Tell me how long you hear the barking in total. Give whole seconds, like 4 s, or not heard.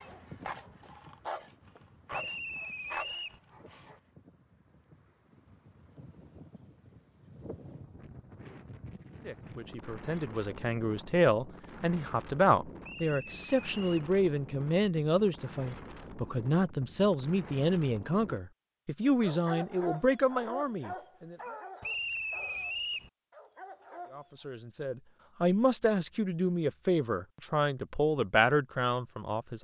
9 s.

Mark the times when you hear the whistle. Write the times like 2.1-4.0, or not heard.
2.1-3.4, 12.8-14.1, 21.8-23.1.